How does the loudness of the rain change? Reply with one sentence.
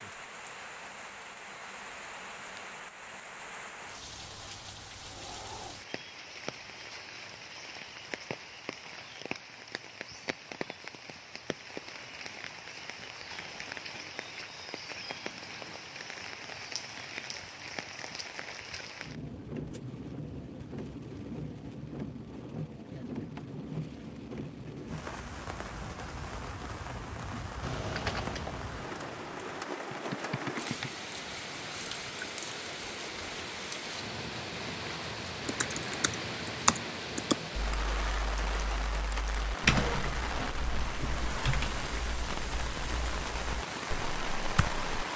The loudness of the rain goes up.